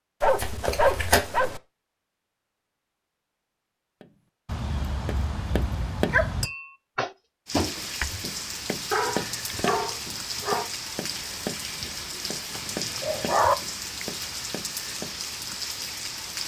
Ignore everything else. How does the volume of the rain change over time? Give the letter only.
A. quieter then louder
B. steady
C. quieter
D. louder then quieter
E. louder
B.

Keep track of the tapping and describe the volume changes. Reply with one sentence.
The loudness of the tapping goes down.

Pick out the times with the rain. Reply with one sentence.
You can hear the rain from 7.5 to 16.4 s.